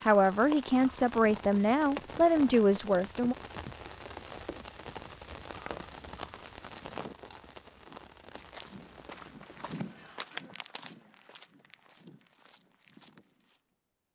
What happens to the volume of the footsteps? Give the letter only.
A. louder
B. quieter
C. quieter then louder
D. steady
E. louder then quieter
E.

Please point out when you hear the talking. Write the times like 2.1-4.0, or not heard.
0.0-3.4.